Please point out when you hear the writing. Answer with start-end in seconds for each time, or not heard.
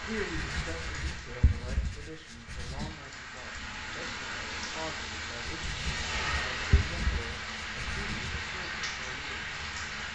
0.2-3.0, 5.5-8.4.